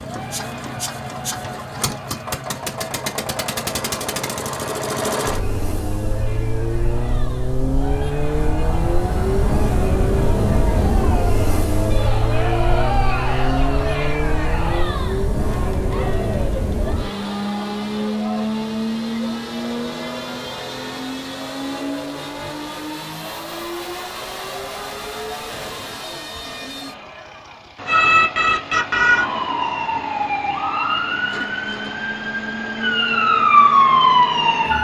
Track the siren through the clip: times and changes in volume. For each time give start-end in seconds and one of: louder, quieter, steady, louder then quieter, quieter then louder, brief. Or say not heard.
27.9-34.7 quieter then louder.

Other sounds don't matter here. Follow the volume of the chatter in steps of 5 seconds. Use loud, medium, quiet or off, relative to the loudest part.
medium, medium, loud, medium, medium, medium, off.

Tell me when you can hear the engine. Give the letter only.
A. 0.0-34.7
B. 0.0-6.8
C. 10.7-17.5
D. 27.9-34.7
A.